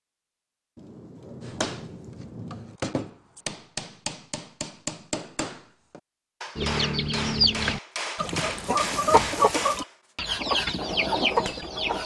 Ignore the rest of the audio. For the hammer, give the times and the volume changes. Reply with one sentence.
You can hear the hammer from 1.4 to 12.0 s, at a steady volume.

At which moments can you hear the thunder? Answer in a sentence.
The thunder can be heard from 0.8 to 2.8 s.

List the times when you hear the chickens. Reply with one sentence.
The chickens can be heard from 6.5 to 12.0 s.